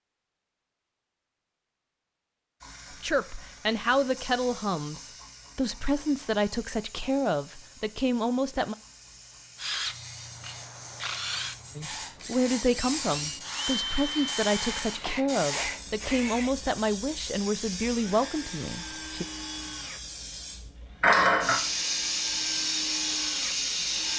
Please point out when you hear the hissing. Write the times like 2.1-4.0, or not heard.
2.6-24.1.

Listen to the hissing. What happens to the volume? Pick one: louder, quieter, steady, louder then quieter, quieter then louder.
louder.